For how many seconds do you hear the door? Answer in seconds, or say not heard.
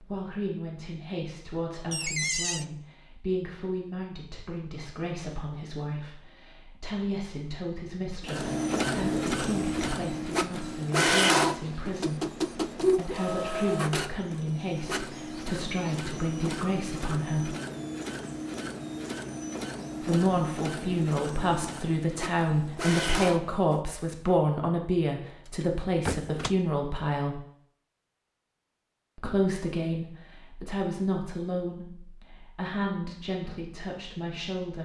2 s.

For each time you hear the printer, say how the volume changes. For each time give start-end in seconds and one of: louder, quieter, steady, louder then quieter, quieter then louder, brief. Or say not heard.
8.2-23.8 quieter.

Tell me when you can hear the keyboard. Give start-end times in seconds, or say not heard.
not heard.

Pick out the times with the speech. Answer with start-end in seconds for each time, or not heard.
0.0-17.6, 20.0-27.4, 29.1-34.8.